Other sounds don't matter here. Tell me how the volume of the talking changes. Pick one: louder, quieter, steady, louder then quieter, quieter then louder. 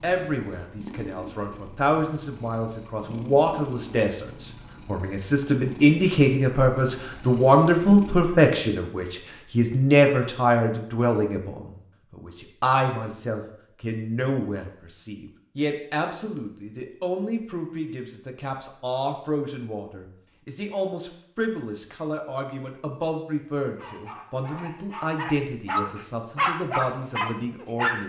louder then quieter.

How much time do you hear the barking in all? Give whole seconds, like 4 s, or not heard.
4 s.